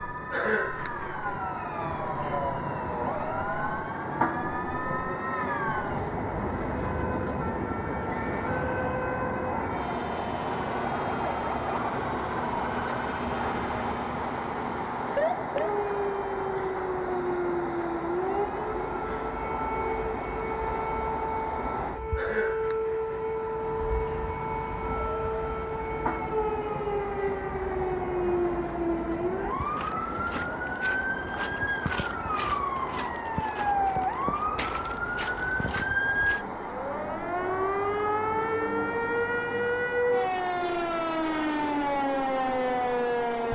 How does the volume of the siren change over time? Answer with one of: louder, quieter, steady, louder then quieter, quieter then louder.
louder.